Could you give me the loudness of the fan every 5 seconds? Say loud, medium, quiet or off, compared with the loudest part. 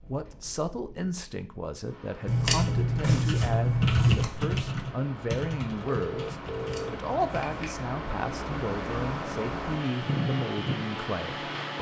quiet, medium, loud.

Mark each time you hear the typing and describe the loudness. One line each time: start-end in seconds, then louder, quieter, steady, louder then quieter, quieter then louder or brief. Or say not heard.
2.5-7.7 louder then quieter.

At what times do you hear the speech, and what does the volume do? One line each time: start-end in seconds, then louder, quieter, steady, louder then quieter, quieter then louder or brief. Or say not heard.
0.1-11.7 steady.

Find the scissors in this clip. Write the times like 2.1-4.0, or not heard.
2.2-4.2, 6.5-7.8.